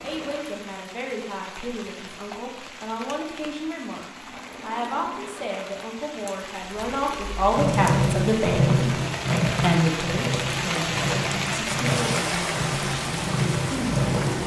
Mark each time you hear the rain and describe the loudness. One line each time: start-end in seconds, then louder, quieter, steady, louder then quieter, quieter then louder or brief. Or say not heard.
0.0-14.4 louder.